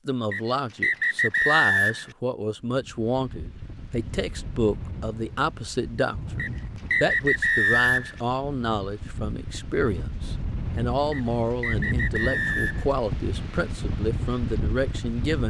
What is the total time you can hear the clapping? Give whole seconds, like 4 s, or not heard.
not heard.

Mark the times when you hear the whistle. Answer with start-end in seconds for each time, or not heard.
0.3-2.0, 6.3-8.2, 11.1-12.8.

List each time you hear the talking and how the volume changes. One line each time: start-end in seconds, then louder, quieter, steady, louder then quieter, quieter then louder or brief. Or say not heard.
0.1-15.4 steady.